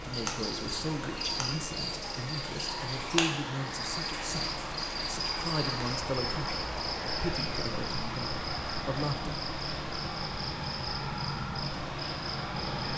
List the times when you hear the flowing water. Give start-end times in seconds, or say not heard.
0.0-12.9.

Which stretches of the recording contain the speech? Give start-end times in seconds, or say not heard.
0.0-9.3.